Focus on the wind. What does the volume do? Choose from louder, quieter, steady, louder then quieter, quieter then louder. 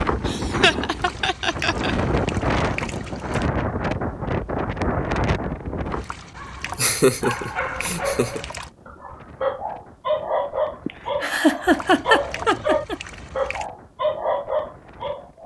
quieter.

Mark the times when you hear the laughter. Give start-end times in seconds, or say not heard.
0.2-1.9, 6.8-8.4, 10.8-12.9.